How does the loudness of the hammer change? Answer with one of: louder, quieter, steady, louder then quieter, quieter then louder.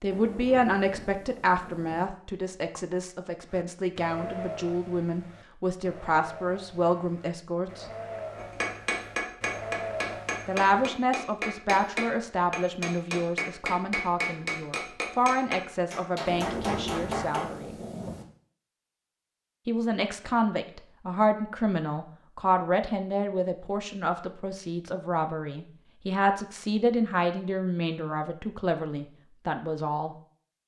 steady.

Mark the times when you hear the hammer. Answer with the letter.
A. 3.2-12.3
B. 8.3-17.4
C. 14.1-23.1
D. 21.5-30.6
B.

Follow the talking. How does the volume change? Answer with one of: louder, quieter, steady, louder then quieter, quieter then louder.
steady.